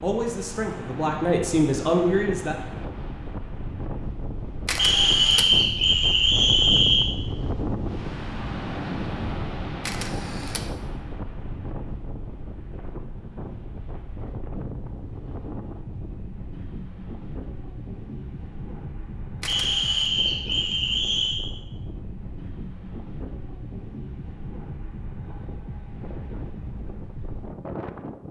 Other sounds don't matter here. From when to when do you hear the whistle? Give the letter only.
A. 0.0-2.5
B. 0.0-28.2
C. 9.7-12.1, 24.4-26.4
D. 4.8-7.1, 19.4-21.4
D.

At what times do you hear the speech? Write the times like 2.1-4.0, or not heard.
0.0-2.5.